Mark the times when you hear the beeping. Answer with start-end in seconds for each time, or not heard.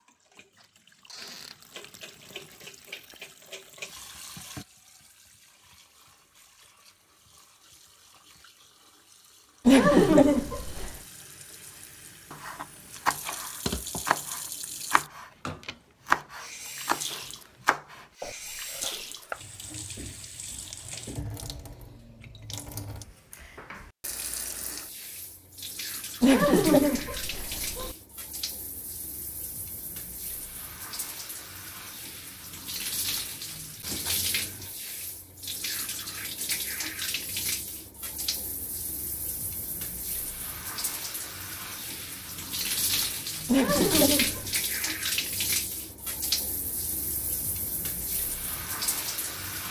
not heard.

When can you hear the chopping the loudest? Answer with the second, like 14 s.
16 s.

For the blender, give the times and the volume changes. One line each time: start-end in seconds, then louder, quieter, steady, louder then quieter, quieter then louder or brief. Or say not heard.
not heard.